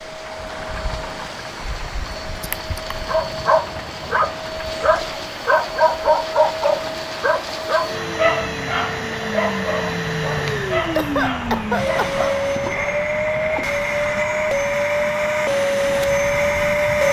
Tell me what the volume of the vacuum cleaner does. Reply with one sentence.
The volume of the vacuum cleaner goes up.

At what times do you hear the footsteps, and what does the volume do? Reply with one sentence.
You can't hear the footsteps here.